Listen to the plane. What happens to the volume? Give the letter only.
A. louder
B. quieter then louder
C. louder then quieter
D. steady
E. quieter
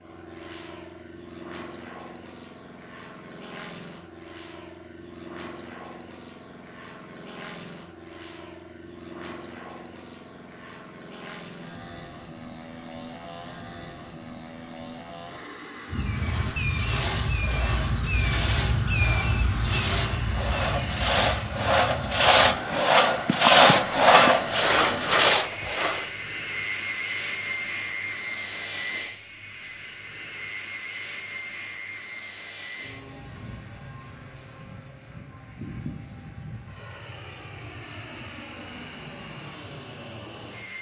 C.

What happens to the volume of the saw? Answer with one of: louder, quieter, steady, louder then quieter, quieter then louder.
louder.